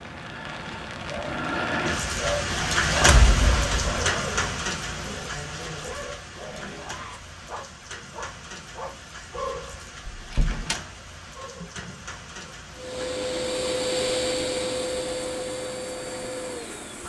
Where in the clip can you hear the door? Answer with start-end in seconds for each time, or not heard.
3.0-4.1, 10.2-10.8.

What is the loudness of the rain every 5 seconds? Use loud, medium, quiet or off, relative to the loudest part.
loud, quiet, quiet, quiet.